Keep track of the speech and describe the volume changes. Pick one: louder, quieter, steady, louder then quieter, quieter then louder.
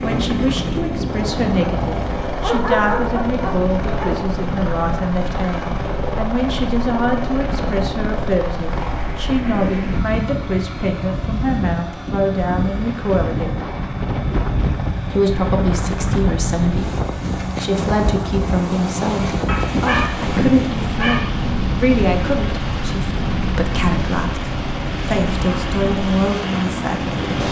steady.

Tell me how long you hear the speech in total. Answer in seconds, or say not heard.
26 s.